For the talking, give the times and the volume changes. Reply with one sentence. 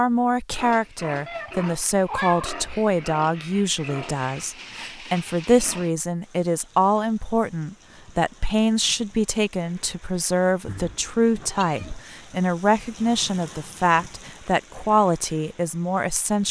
You can hear the talking from 0.0 to 16.4 s, at a steady volume.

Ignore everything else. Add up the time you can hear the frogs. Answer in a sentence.
The frogs can't be heard in this clip.